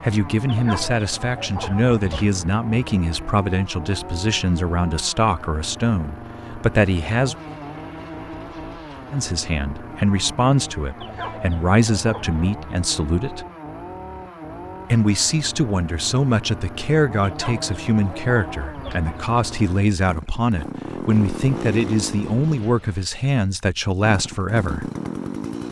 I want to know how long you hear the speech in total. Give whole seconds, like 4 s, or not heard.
22 s.